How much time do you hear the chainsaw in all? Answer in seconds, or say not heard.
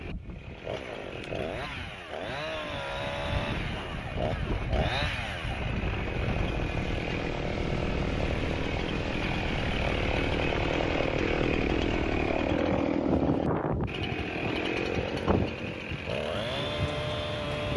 18 s.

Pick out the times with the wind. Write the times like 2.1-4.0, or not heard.
0.0-17.7.